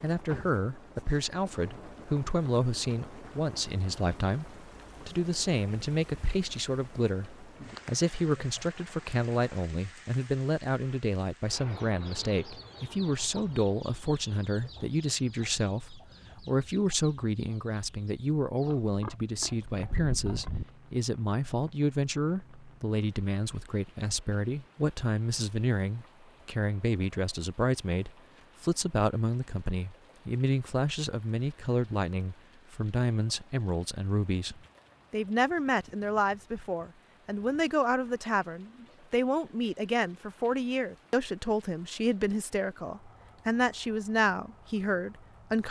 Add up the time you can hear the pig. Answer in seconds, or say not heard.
2 s.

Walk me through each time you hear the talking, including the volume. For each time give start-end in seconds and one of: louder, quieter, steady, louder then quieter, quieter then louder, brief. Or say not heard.
0.0-45.6 steady.